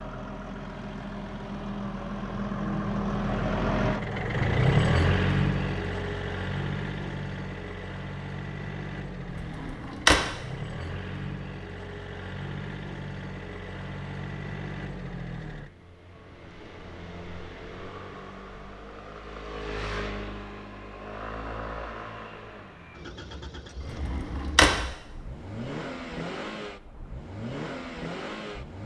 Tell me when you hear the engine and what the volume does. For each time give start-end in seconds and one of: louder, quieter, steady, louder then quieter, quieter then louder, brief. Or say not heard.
0.0-28.8 quieter.